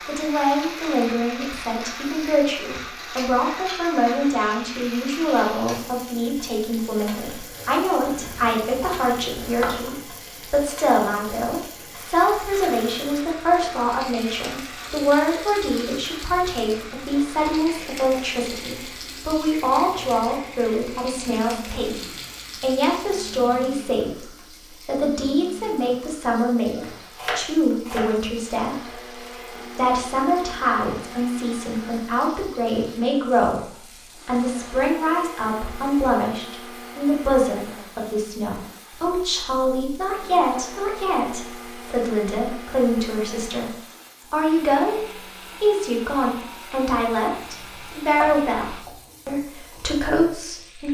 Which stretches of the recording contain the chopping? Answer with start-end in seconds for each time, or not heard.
8.0-10.0, 26.7-28.2, 47.0-49.0.